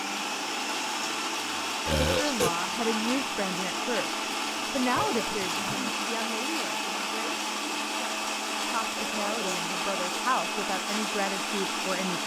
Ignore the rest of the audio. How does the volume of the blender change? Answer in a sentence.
The volume of the blender stays about the same.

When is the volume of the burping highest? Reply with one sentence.
The volume of the burping peaks at 2 seconds.